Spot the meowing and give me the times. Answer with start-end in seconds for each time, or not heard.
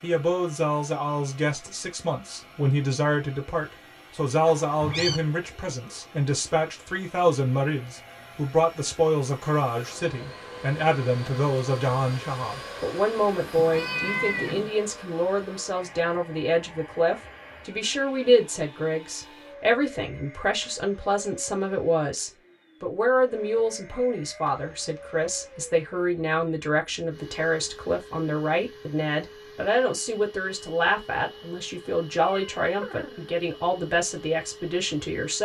4.5-5.2, 13.6-14.7, 32.4-33.3.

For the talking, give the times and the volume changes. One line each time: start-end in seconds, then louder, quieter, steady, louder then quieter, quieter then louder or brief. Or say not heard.
0.0-35.4 steady.